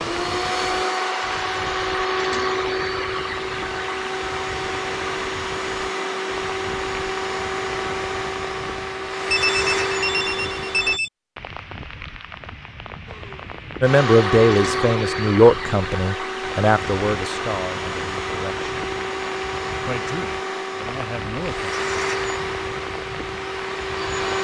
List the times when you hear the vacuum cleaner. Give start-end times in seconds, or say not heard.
0.0-11.0, 13.1-24.3.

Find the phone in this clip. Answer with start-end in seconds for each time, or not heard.
9.3-11.1.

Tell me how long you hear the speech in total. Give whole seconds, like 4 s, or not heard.
7 s.